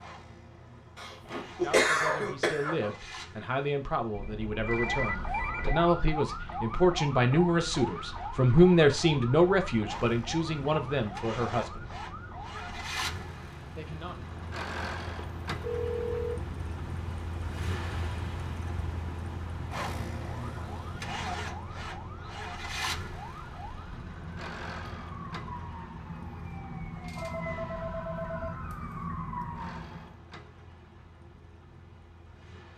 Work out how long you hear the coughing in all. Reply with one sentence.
You can hear the coughing for 2 seconds altogether.